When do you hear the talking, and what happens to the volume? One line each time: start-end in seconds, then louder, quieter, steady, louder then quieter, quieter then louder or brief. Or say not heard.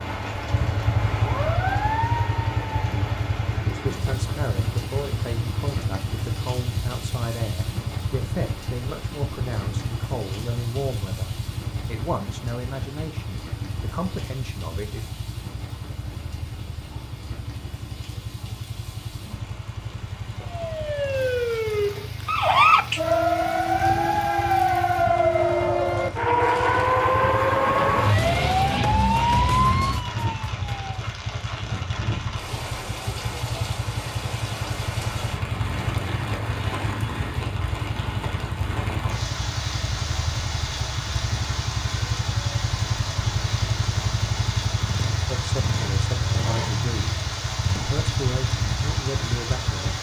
2.9-15.1 steady
45.2-49.9 steady.